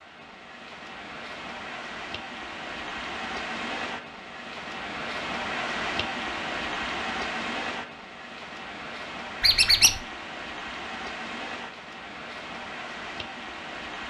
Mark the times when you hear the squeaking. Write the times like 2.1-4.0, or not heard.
9.4-10.0.